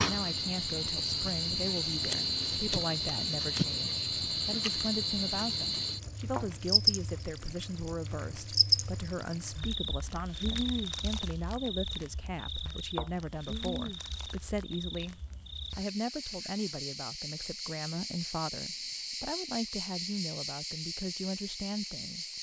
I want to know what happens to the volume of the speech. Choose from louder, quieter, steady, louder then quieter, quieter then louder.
steady.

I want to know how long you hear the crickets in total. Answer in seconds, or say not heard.
22 s.